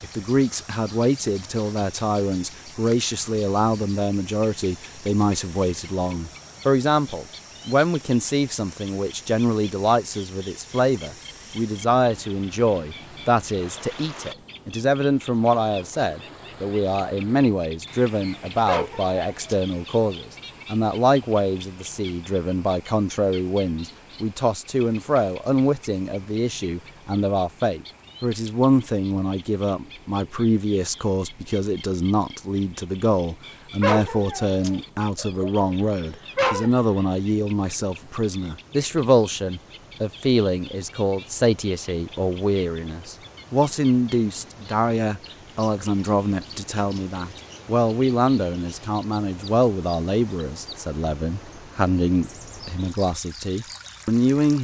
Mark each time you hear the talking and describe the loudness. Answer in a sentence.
You can hear the talking from 0.0 to 54.6 s, at a steady volume.